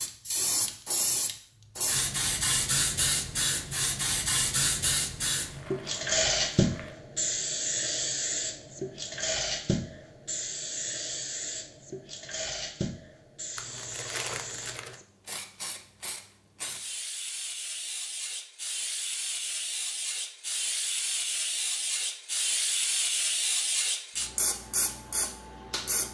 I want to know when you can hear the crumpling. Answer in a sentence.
You can hear the crumpling from 5.5 to 7.0 s and from 13.6 to 15.0 s.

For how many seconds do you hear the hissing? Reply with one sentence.
The hissing can be heard for 26 seconds in total.